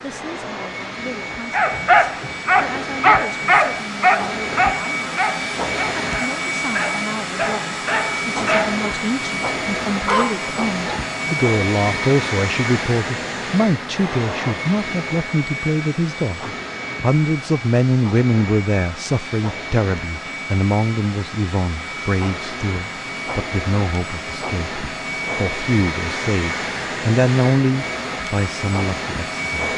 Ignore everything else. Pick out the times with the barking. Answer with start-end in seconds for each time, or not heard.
1.5-8.8, 9.8-10.9.